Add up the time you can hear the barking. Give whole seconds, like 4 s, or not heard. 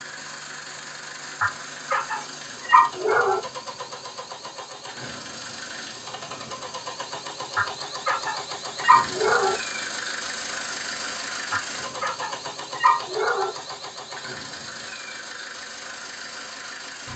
6 s.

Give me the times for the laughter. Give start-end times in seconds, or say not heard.
not heard.